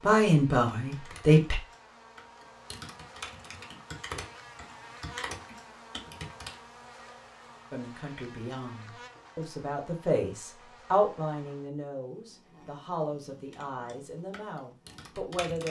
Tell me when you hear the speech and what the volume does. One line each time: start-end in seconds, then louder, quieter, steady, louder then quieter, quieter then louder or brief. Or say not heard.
0.0-1.6 brief
7.7-15.6 louder then quieter.